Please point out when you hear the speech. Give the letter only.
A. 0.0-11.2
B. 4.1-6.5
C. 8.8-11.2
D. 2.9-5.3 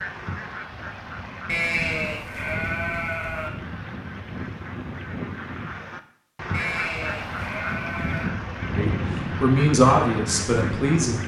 C.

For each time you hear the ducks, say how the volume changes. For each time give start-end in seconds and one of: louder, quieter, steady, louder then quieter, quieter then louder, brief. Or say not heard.
0.0-11.2 louder.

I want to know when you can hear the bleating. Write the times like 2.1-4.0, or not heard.
1.4-3.5, 6.5-8.3.